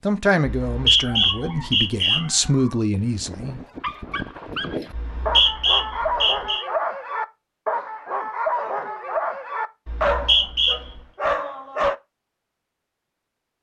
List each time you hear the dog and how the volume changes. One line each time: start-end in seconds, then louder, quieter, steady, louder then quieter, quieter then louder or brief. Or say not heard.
1.0-11.9 louder.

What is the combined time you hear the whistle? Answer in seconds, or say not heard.
4 s.